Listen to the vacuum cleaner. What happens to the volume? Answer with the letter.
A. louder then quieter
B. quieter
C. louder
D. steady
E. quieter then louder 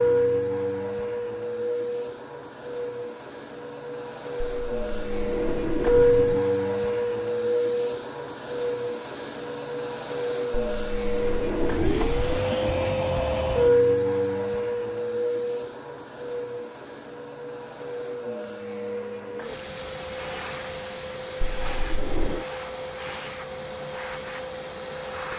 A.